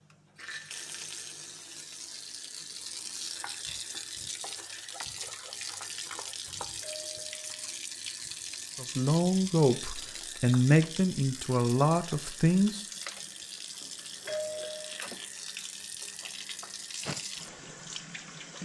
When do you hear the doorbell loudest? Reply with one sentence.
The volume of the doorbell peaks at 14 seconds.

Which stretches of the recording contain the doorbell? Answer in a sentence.
The doorbell can be heard from 6.3 to 7.5 s and from 13.8 to 15.0 s.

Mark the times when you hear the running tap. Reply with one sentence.
The running tap can be heard from 0.0 to 18.6 s.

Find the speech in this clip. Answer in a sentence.
The speech can be heard from 8.8 to 12.8 s.